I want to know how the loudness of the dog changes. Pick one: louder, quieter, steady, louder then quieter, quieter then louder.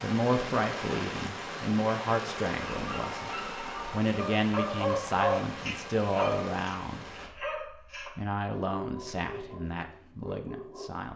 louder then quieter.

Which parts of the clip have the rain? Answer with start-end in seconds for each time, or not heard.
0.0-7.3.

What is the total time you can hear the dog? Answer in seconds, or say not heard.
8 s.